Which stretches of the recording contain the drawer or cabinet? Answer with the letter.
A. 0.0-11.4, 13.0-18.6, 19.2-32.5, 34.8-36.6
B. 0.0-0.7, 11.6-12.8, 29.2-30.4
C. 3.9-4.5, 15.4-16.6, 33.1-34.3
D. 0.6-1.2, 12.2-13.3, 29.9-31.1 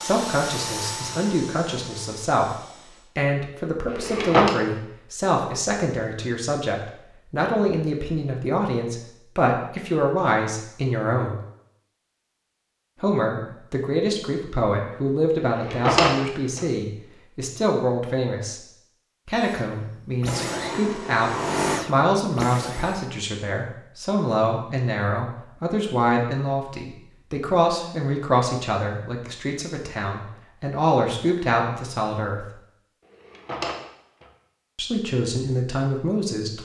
C.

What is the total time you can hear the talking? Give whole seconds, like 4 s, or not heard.
32 s.